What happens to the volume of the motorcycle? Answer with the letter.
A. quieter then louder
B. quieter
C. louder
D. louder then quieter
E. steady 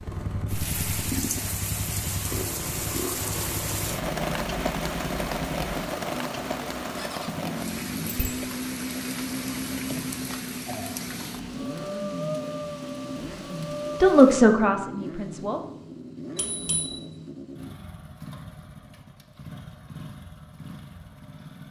B.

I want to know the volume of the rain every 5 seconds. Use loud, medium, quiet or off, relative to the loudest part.
loud, loud, loud, off, off.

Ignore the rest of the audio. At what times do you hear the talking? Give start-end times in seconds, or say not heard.
14.0-15.6.